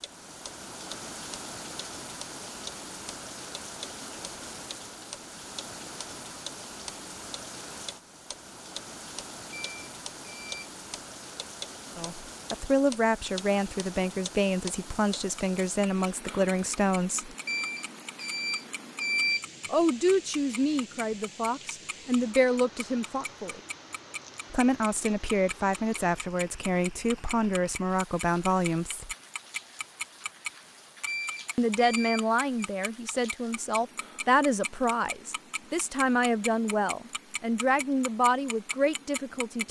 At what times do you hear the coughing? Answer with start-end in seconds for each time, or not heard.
not heard.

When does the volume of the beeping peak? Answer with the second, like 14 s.
19 s.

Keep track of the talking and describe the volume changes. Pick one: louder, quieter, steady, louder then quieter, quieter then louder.
steady.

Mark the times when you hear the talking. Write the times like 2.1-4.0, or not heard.
11.9-17.3, 19.7-23.6, 24.5-29.1, 31.6-39.6.